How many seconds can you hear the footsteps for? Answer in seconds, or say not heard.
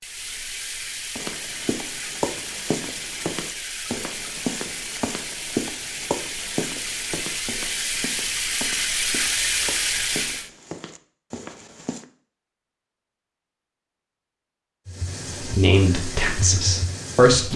11 s.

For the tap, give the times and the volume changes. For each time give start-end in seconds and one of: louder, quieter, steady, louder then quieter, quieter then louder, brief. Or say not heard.
0.0-10.5 louder
14.8-17.5 brief.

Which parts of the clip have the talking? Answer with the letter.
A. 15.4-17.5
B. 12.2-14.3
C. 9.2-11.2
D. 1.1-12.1
A.